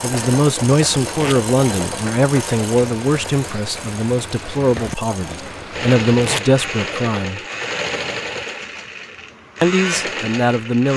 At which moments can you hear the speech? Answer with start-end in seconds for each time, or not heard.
0.0-7.4, 9.6-10.9.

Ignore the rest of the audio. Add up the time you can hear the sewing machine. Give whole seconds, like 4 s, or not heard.
11 s.